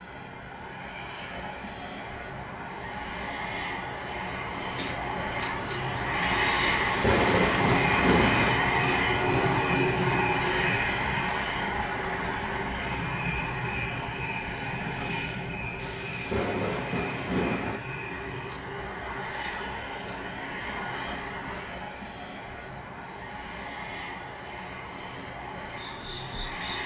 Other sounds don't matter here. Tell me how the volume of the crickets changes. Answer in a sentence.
The loudness of the crickets goes down.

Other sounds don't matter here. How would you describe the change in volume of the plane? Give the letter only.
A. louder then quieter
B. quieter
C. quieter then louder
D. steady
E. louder
A.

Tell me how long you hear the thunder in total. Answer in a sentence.
The thunder can be heard for 4 seconds in total.